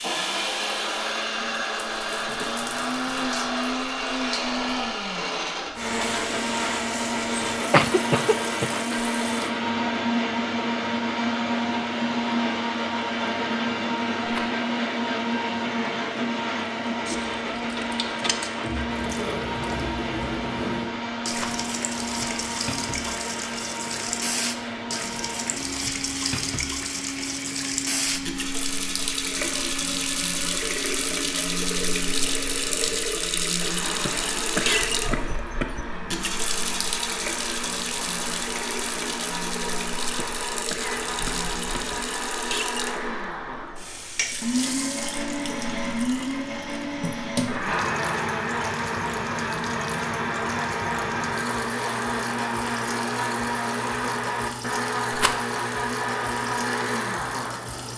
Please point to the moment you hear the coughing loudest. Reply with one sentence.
The loudest moment of the coughing is at 8 seconds.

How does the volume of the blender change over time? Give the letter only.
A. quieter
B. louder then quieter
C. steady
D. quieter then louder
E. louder
D.